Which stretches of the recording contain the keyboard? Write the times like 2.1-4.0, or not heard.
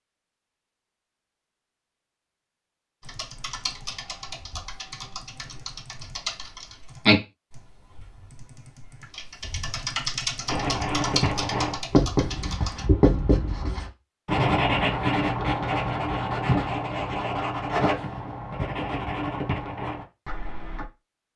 3.0-12.8.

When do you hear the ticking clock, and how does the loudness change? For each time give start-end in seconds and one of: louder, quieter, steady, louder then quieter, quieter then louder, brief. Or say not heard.
not heard.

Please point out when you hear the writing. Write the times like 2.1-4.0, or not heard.
10.4-20.9.